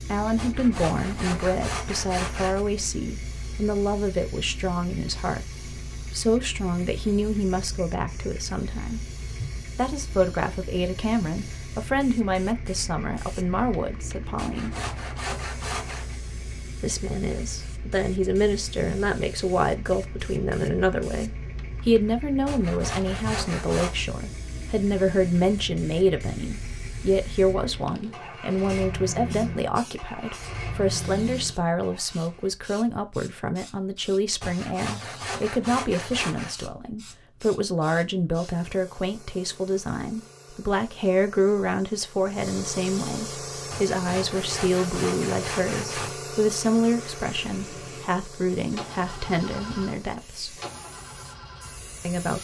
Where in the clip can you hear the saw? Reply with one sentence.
You can hear the saw from 0.3 to 2.6 s, from 14.3 to 16.2 s, from 22.4 to 24.1 s, from 34.4 to 36.5 s and from 43.7 to 46.1 s.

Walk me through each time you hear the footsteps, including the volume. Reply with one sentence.
The footsteps can't be heard in this clip.